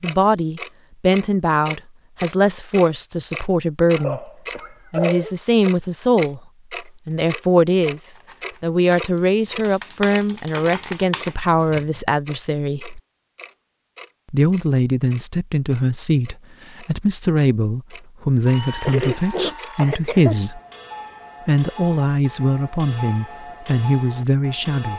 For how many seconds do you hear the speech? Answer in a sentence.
The speech can be heard for 22 seconds in total.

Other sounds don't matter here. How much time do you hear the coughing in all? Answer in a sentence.
The coughing can be heard for 3 seconds in total.